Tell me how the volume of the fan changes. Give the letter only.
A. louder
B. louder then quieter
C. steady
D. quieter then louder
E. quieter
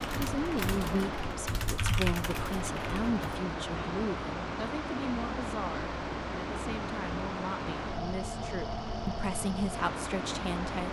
C.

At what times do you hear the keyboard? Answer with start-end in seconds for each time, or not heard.
0.0-3.2.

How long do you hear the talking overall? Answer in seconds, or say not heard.
11 s.